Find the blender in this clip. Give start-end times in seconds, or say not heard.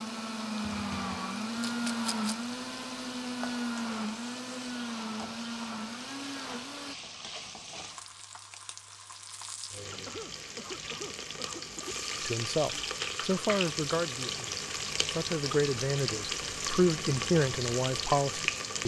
0.0-7.0.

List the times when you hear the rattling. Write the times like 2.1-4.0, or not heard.
1.6-2.4.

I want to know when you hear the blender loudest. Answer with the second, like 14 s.
2 s.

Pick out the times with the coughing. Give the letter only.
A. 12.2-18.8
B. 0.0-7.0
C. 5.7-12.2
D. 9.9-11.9
D.